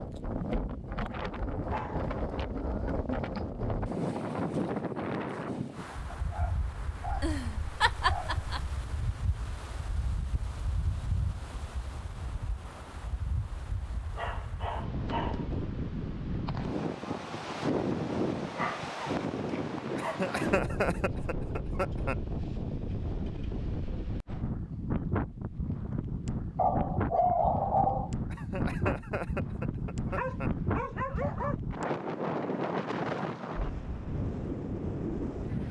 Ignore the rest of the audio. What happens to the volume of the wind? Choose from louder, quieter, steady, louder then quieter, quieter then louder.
quieter then louder.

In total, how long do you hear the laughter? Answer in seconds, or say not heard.
6 s.